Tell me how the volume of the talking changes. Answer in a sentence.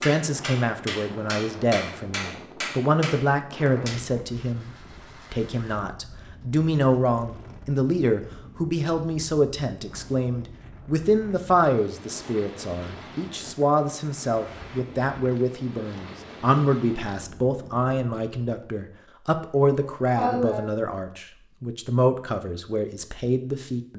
The loudness of the talking stays about the same.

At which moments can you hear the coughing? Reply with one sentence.
The coughing can be heard from 19.6 to 20.6 s.